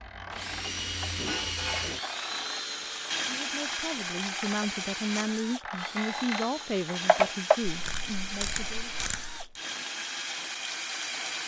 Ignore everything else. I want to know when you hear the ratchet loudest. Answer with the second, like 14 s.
7 s.